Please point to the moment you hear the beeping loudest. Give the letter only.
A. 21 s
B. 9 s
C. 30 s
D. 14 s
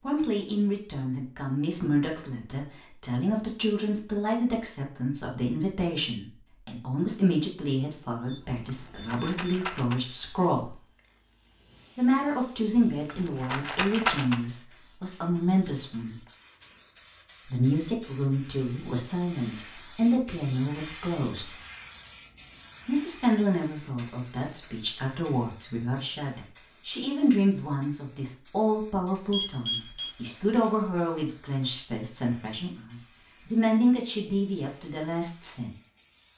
C.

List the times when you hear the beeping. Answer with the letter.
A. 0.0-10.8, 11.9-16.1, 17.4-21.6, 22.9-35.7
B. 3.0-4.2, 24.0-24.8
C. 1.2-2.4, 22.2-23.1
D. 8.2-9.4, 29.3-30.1
D.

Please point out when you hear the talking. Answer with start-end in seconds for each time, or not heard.
0.0-10.8, 11.9-16.1, 17.4-21.6, 22.9-35.7.